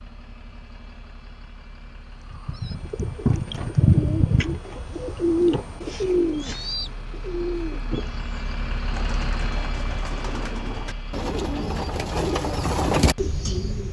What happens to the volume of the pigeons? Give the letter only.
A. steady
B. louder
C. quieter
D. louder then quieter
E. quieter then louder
E.